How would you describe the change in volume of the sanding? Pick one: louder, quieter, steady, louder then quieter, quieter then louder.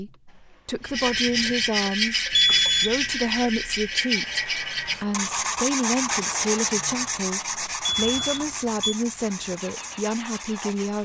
quieter.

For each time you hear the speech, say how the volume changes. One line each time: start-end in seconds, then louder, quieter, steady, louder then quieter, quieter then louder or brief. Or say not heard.
0.0-11.0 steady.